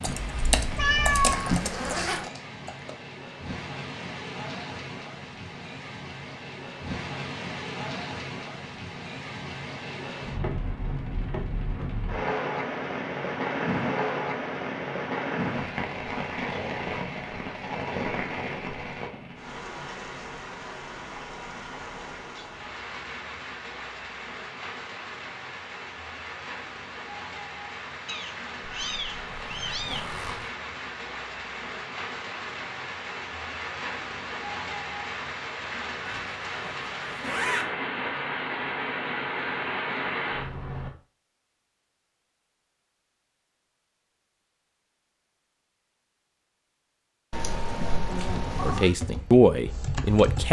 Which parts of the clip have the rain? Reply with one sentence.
The rain can be heard from 0.0 to 40.9 s.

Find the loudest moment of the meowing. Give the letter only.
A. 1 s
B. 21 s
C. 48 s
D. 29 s
A.